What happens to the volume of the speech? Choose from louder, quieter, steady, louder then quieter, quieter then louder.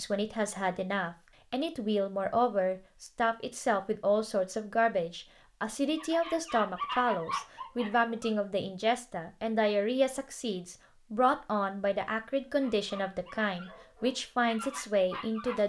steady.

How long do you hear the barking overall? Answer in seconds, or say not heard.
6 s.